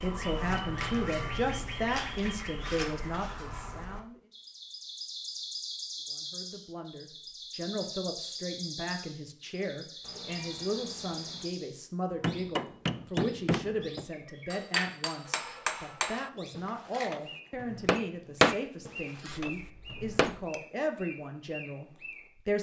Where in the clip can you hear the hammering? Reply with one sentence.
You can hear the hammering from 12.1 to 20.4 s.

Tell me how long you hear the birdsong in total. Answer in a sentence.
The birdsong can be heard for 22 seconds in total.